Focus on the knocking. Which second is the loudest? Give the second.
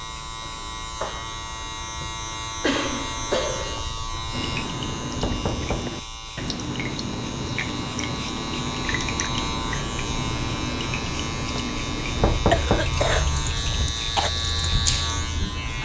13 s.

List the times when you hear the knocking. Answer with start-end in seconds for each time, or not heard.
5.2-5.9, 12.2-13.9.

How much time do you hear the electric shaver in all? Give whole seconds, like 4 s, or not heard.
16 s.